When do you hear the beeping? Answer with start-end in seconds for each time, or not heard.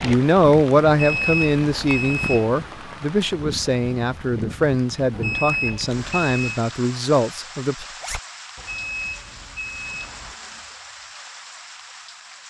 0.9-2.5, 5.1-6.6, 8.6-10.3.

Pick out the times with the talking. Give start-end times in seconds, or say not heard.
0.0-7.8.